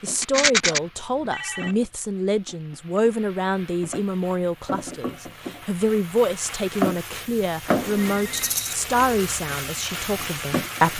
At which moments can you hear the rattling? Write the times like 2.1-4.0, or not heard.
0.2-0.8, 8.3-8.8.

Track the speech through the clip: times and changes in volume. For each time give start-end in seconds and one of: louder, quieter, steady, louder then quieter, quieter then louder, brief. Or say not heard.
0.0-10.9 steady.